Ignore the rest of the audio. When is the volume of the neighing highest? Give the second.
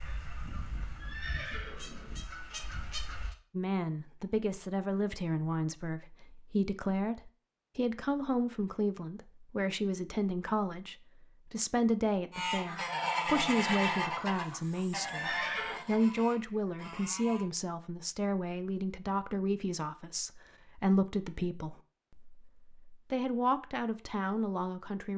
15 s.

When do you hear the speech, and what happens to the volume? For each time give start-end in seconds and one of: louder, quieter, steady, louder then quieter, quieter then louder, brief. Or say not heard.
3.5-25.1 steady.